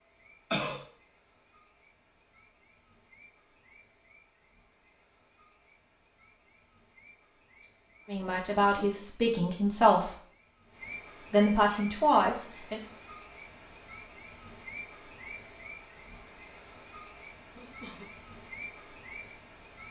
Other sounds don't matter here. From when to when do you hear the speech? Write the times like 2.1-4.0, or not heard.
8.1-10.2, 11.3-12.8.